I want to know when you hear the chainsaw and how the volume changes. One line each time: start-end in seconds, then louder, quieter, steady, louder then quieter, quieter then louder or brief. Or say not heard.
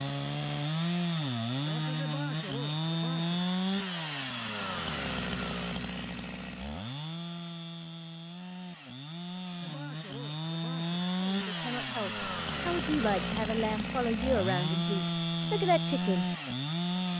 0.0-17.1 quieter then louder.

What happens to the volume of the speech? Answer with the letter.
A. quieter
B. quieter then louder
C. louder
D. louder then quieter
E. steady
C.